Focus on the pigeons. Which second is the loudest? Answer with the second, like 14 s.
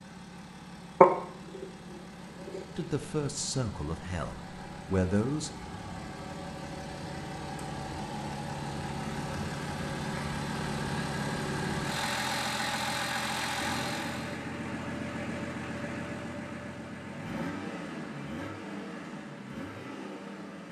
1 s.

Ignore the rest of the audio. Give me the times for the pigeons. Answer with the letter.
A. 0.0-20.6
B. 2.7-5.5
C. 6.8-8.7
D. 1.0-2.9
D.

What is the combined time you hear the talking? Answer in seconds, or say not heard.
3 s.